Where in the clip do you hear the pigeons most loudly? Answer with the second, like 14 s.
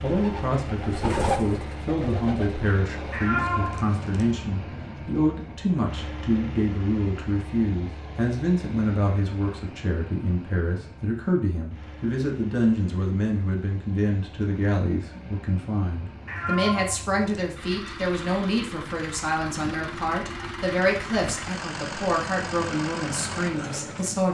1 s.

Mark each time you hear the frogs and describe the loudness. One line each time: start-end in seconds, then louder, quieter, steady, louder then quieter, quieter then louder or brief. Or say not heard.
not heard.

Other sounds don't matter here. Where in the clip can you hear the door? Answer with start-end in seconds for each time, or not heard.
not heard.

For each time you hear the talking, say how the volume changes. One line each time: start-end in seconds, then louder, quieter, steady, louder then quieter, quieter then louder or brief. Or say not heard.
0.0-24.2 steady.